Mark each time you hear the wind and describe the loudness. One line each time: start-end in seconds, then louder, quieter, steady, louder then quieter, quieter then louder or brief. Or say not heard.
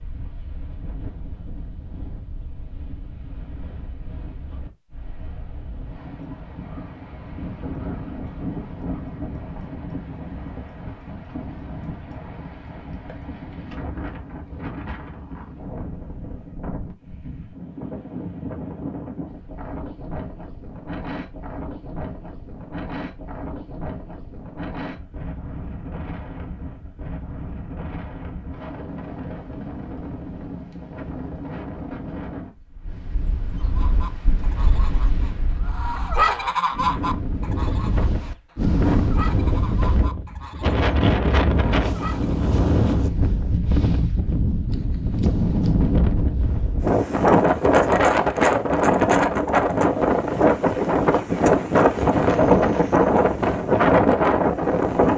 0.0-55.1 louder.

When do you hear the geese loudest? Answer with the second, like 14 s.
36 s.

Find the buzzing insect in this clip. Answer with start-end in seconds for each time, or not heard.
not heard.